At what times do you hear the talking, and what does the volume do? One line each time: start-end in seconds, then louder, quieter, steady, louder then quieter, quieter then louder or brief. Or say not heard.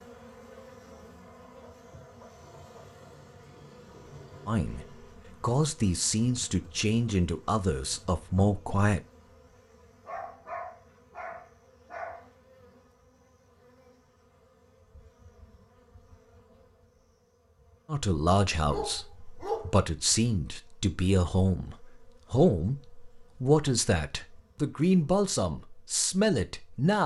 4.5-9.0 steady
17.9-27.0 steady.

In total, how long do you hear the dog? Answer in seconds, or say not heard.
5 s.